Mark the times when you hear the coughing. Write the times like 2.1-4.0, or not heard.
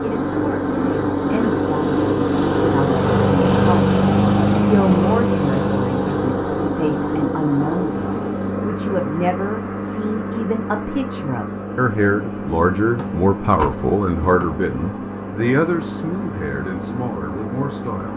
not heard.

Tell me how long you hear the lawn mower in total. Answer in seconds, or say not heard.
18 s.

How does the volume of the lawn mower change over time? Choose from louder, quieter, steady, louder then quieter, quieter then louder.
quieter.